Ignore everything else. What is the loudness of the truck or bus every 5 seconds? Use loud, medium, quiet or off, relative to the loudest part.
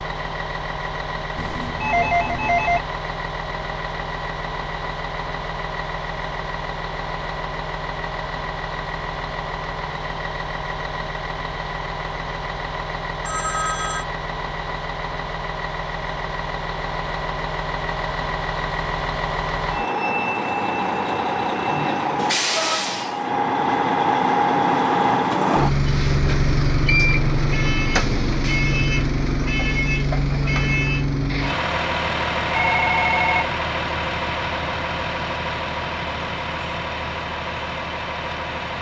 medium, medium, medium, medium, loud, loud, loud, medium.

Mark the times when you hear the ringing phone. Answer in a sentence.
The ringing phone can be heard from 1.4 to 2.8 s, from 13.2 to 14.1 s and from 32.5 to 33.5 s.